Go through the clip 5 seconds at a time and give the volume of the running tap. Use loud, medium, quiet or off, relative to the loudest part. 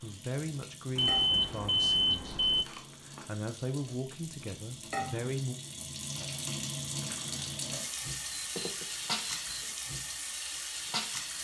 medium, loud, loud.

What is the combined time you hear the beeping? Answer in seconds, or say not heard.
3 s.